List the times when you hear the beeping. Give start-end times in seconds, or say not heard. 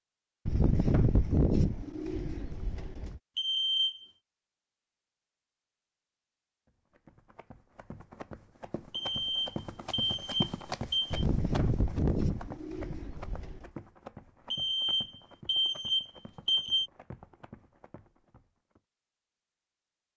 3.4-4.0, 8.9-11.2, 14.5-16.9.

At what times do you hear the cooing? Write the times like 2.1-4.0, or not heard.
0.5-3.2, 11.1-13.7.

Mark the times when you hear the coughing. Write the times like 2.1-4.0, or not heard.
not heard.